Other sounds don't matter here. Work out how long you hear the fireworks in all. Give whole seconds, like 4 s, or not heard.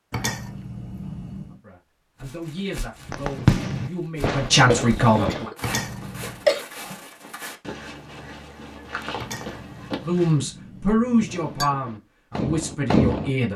5 s.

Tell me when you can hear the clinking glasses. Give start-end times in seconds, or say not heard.
0.1-1.6, 5.6-6.5, 9.2-11.7.